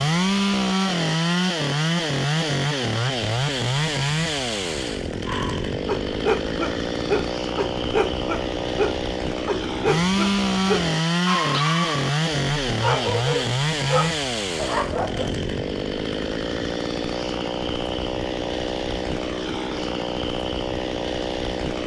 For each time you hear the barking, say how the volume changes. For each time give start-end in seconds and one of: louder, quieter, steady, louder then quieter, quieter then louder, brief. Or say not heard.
5.2-15.3 steady.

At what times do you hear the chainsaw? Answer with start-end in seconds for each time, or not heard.
0.0-21.8.